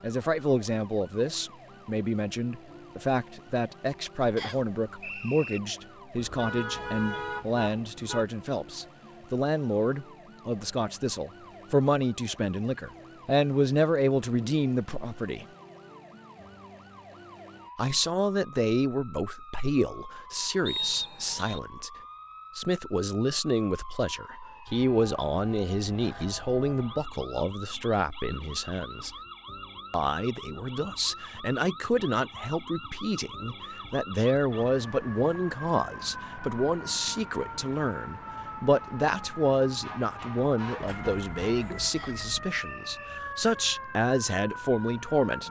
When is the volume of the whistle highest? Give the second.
21 s.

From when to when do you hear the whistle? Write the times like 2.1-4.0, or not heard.
4.3-5.6, 20.6-21.6, 42.0-43.2.